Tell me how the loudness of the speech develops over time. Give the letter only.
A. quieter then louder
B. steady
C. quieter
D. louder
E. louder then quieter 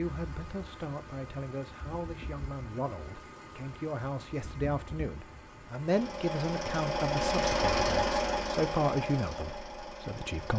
D.